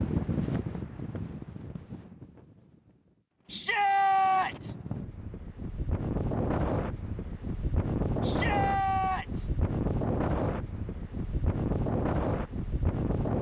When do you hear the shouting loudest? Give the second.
4 s.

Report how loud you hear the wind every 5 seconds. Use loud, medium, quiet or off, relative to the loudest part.
medium, loud, loud.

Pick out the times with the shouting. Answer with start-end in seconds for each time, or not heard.
3.5-4.8, 8.2-9.4.